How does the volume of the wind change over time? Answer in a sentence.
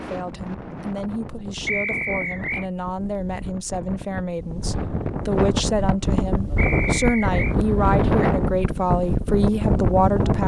The loudness of the wind goes up.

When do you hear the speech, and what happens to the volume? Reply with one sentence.
The speech can be heard from 0.0 to 10.4 s, getting louder.